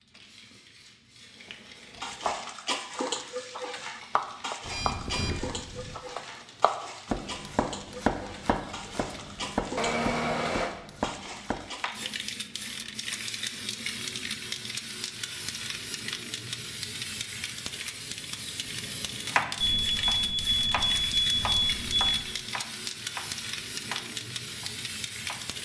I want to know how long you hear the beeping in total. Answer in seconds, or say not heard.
5 s.